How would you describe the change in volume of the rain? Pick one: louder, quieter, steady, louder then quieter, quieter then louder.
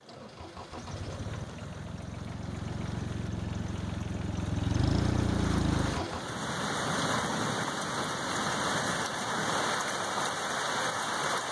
louder.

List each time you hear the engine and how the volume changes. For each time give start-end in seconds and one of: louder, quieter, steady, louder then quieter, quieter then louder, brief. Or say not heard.
0.0-6.3 louder.